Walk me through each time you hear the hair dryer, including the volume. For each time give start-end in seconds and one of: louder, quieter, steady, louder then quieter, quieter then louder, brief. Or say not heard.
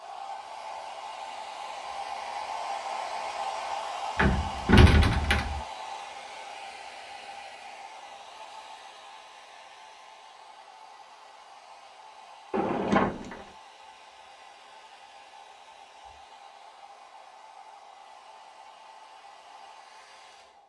0.0-20.6 quieter.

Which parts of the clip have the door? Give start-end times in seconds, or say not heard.
4.2-5.6, 12.5-13.4.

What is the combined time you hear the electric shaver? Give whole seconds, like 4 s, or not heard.
not heard.